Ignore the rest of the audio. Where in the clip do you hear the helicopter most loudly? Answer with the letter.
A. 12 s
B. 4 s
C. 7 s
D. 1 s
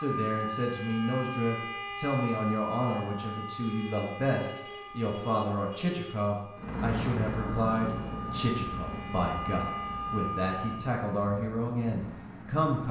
C.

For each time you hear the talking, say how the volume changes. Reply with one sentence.
The talking can be heard from 0.0 to 12.8 s, at a steady volume.